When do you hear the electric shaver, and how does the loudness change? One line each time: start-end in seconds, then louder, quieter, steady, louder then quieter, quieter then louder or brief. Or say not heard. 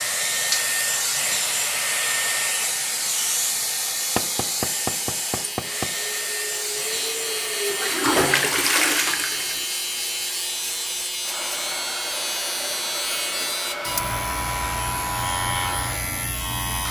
0.1-16.8 louder.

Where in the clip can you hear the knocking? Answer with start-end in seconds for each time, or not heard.
4.2-6.0.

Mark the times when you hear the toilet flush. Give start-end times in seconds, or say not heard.
7.7-9.7.